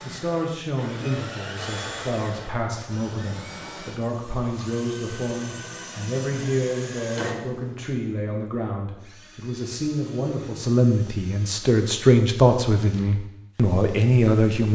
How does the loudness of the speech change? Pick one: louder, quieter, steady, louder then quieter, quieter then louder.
louder.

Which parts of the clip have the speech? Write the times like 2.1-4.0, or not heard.
0.0-14.7.